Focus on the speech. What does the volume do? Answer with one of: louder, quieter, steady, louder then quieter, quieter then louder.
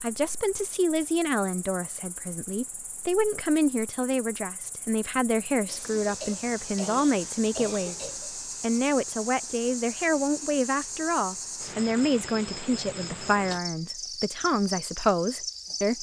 steady.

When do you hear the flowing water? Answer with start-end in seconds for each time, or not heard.
not heard.